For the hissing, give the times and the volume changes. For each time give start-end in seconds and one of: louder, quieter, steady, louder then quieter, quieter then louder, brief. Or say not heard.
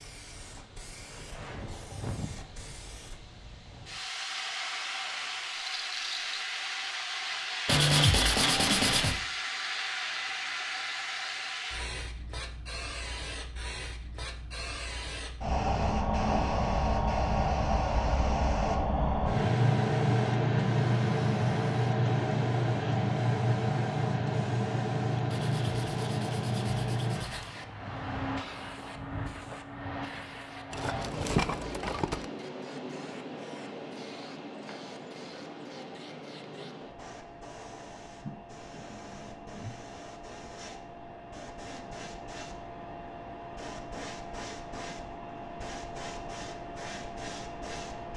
0.0-48.1 louder then quieter.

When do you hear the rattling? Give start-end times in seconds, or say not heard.
5.7-6.3, 30.7-32.2.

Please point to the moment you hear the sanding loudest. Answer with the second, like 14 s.
8 s.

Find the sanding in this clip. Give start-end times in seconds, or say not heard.
7.7-9.2, 25.2-27.5.